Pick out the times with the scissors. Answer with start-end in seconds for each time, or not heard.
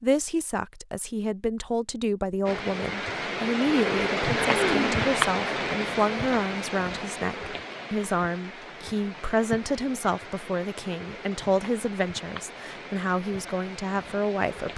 not heard.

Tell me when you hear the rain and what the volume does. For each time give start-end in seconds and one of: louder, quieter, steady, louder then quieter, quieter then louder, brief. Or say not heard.
2.5-14.7 quieter.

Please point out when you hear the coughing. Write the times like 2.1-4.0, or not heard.
4.4-5.0.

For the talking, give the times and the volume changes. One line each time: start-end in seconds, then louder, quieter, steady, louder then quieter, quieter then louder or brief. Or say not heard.
0.0-14.7 steady.